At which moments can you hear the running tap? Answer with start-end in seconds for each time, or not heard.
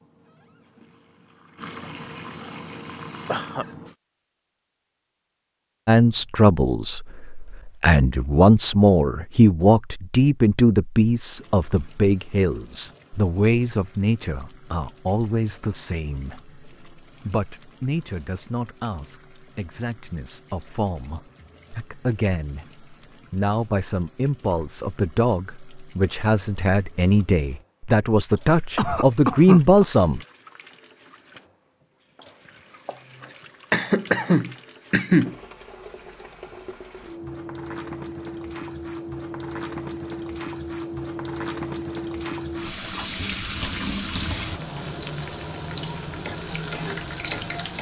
0.0-4.0, 11.3-47.7.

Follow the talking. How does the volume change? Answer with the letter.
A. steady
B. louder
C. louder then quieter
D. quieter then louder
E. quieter
D.